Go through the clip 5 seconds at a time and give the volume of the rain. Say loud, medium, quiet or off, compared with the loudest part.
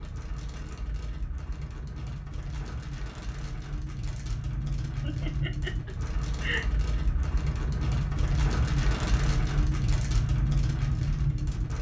medium, loud, loud.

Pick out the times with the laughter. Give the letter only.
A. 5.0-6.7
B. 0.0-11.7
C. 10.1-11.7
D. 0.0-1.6
A.